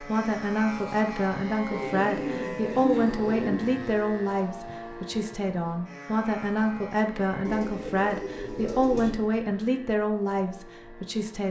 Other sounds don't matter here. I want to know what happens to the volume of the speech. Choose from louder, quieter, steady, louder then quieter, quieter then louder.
steady.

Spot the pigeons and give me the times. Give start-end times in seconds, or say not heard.
1.7-3.6, 7.5-9.1.